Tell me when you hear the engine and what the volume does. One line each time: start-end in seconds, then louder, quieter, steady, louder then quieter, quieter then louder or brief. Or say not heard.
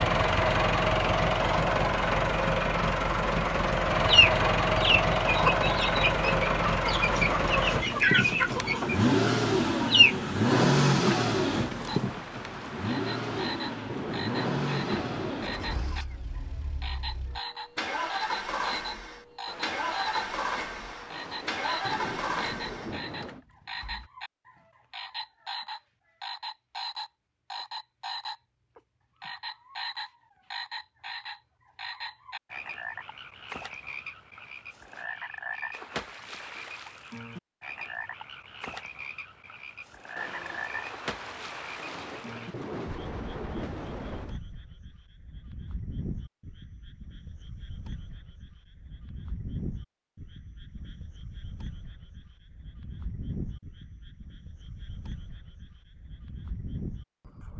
0.0-24.1 quieter.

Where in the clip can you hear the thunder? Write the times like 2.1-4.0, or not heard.
11.5-16.0, 19.4-23.4, 40.1-44.4.